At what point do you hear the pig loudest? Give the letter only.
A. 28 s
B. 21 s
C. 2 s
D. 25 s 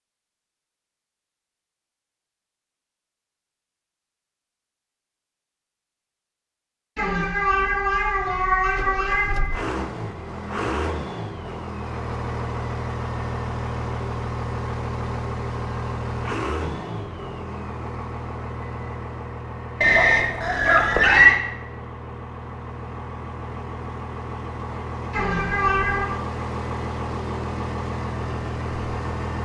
B.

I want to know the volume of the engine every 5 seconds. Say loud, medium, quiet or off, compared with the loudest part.
off, loud, loud, loud, medium, loud.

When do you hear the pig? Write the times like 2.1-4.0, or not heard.
19.8-21.4.